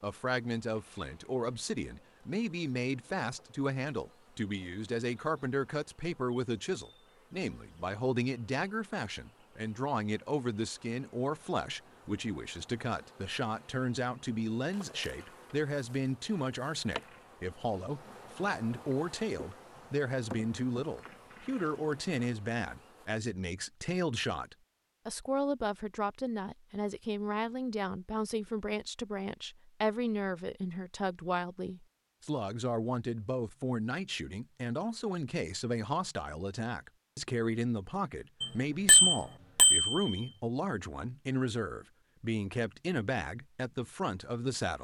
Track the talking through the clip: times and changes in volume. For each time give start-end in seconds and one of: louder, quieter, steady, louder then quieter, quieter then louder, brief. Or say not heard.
0.0-44.7 steady.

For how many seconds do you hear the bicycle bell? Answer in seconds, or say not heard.
2 s.